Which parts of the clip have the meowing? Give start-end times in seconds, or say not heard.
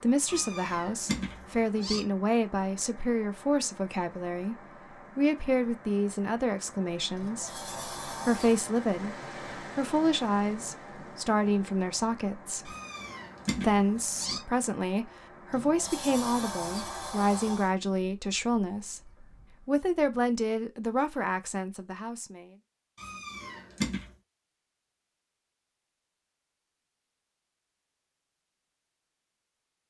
0.2-2.0, 12.7-14.4, 22.9-24.1.